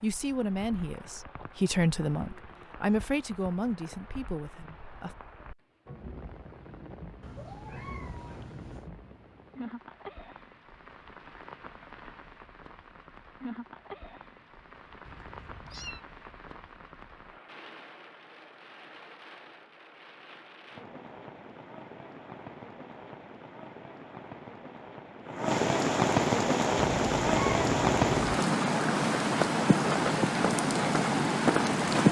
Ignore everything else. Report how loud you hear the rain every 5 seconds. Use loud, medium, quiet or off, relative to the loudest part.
quiet, quiet, quiet, quiet, quiet, loud, loud.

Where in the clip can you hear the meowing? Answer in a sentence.
You can hear the meowing from 7.2 to 8.9 s, from 15.1 to 16.0 s and from 26.8 to 28.4 s.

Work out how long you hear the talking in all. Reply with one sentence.
You can hear the talking for 5 seconds altogether.